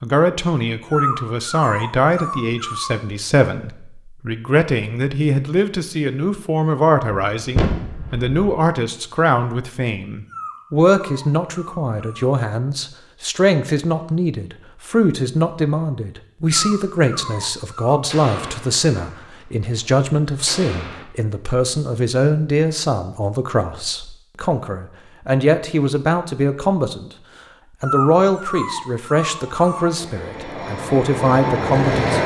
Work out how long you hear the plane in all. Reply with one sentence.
The plane can be heard for 3 seconds in total.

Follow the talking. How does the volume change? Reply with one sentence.
The volume of the talking stays about the same.